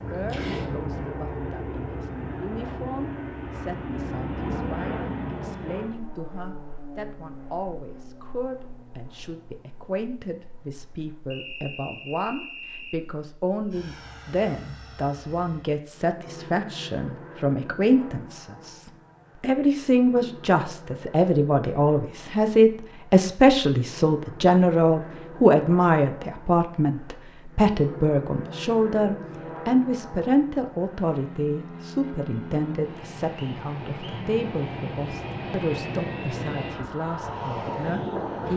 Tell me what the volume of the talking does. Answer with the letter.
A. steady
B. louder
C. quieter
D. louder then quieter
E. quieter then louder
D.